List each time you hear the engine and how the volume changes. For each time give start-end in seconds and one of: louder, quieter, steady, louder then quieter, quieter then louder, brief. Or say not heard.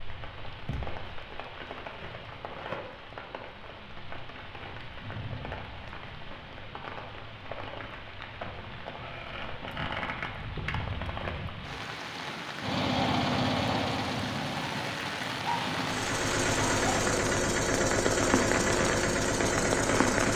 12.6-20.3 quieter then louder.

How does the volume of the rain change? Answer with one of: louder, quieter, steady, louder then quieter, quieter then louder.
louder.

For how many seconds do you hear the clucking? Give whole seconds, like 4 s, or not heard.
not heard.